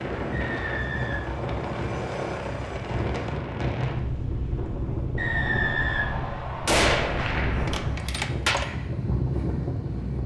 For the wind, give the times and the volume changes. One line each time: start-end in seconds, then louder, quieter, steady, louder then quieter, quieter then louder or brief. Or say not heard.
0.0-10.2 steady.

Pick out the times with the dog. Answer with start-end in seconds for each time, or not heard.
not heard.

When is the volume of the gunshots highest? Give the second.
7 s.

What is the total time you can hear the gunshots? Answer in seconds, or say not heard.
2 s.